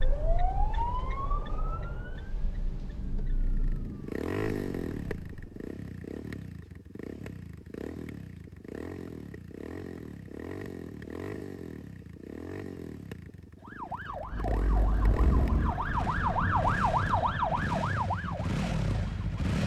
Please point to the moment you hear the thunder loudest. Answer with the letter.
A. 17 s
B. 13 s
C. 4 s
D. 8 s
C.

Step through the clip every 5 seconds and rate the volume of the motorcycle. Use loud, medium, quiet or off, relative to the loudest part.
loud, medium, medium, loud.